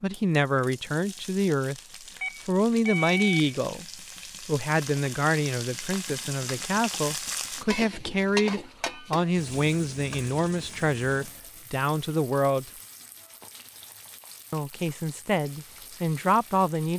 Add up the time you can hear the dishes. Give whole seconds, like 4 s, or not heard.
not heard.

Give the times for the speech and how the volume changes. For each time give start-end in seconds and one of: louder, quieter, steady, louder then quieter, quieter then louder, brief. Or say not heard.
0.0-1.8 brief
2.5-12.7 steady
14.5-16.9 brief.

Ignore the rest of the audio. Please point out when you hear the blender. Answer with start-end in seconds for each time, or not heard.
not heard.